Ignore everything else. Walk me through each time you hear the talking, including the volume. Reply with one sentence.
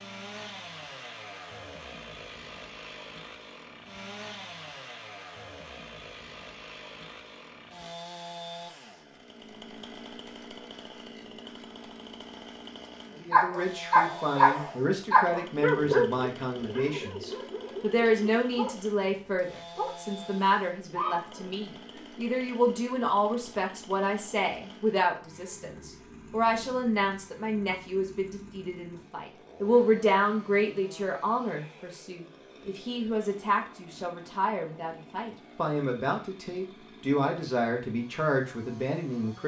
The talking can be heard from 13.2 to 39.4 s, at a steady volume.